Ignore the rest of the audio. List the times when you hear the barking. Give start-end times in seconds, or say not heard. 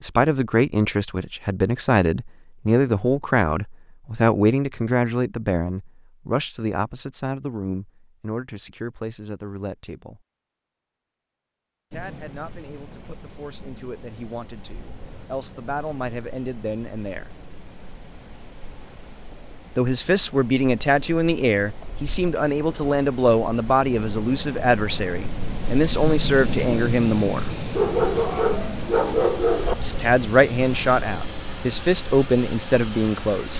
27.8-29.8.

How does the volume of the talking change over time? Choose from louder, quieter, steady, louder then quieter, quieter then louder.
quieter then louder.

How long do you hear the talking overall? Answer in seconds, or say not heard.
27 s.